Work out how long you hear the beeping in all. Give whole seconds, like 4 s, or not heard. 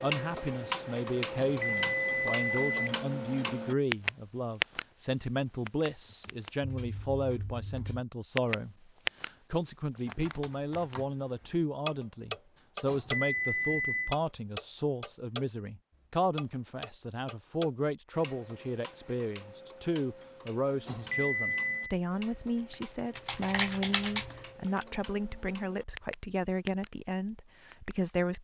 4 s.